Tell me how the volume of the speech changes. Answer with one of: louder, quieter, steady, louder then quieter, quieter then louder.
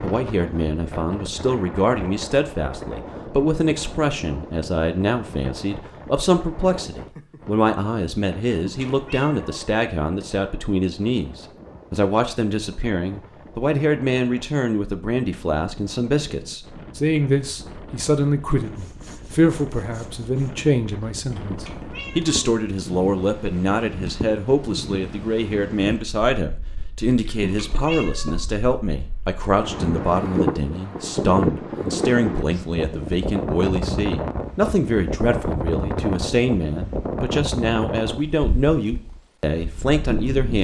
steady.